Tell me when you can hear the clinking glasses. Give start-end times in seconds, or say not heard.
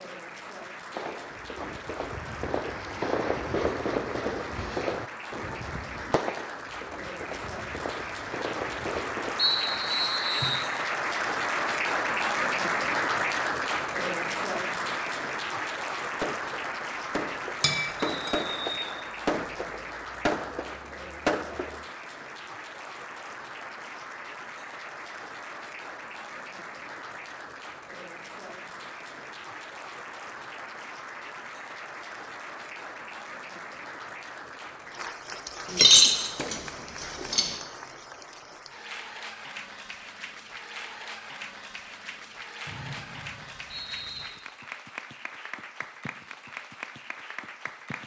17.6-18.3, 35.6-37.5.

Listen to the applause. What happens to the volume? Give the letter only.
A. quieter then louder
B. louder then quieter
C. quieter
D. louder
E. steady
B.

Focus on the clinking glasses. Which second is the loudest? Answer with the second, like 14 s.
36 s.